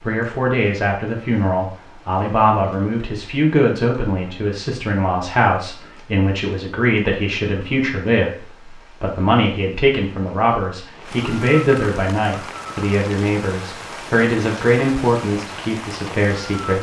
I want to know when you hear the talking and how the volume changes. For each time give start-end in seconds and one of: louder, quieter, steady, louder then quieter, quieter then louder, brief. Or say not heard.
0.0-16.7 steady.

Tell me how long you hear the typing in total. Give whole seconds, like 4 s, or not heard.
not heard.